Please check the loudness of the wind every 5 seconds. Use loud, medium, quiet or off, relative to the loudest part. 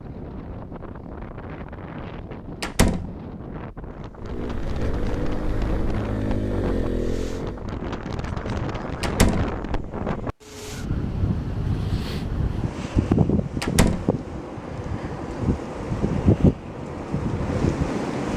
quiet, medium, loud, loud.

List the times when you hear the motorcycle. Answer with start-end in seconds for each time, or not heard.
4.2-7.7.